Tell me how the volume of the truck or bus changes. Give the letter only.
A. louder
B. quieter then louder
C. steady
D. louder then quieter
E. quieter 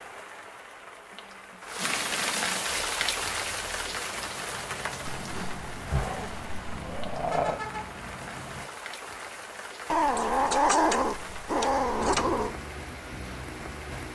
A.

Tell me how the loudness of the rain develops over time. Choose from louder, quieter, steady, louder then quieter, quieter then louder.
quieter.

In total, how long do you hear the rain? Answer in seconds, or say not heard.
14 s.